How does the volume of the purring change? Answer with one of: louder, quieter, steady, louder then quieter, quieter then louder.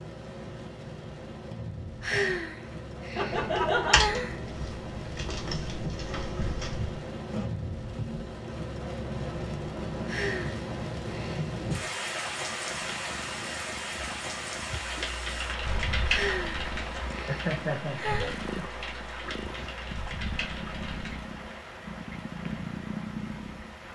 louder.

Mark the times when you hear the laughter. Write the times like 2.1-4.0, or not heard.
3.1-4.0, 17.2-18.6.